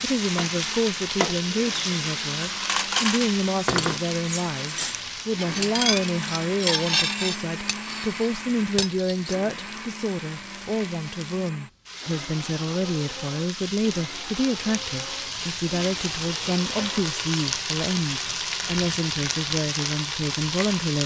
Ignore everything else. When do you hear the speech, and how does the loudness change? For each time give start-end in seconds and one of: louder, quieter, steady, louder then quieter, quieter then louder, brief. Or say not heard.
0.0-21.0 steady.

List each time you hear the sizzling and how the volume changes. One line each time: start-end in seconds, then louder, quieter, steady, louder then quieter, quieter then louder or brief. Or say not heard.
0.0-21.0 quieter then louder.